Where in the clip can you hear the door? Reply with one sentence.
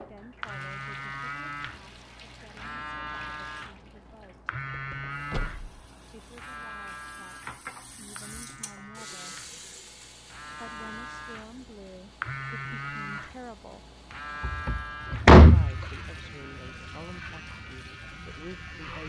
The door can be heard from 4.7 to 5.8 s and from 14.4 to 15.7 s.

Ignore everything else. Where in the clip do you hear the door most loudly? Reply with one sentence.
The volume of the door peaks at 15 seconds.